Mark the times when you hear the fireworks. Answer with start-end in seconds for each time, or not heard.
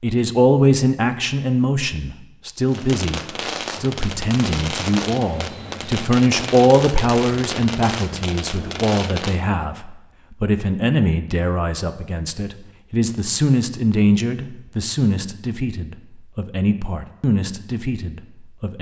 2.6-9.5.